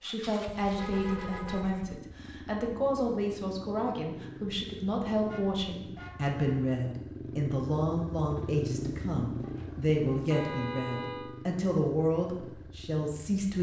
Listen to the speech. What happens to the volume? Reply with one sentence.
The loudness of the speech stays about the same.